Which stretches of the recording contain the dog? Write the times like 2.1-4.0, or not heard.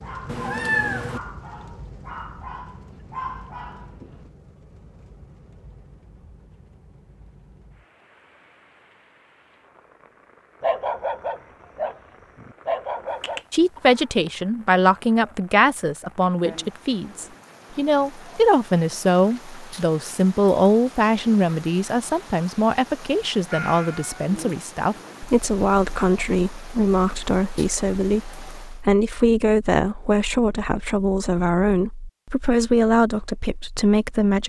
0.0-4.3, 10.6-13.4.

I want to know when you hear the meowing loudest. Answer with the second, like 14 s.
1 s.